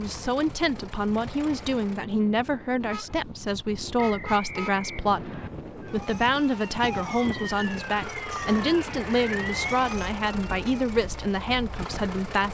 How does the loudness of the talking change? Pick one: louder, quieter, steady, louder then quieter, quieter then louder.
steady.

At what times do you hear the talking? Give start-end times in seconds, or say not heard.
0.0-12.4.